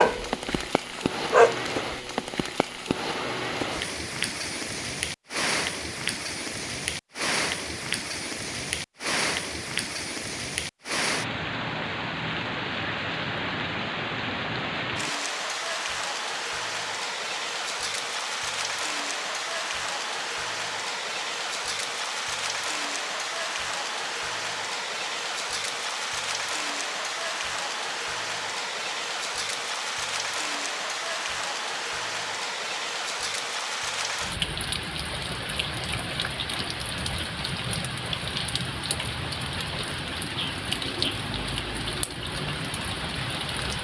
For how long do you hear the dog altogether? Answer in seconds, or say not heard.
2 s.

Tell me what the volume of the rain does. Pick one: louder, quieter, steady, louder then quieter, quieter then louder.
steady.